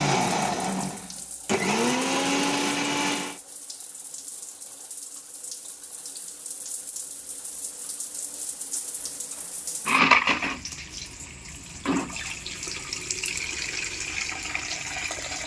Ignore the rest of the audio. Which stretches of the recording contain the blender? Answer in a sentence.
You can hear the blender from 0.0 to 3.4 s.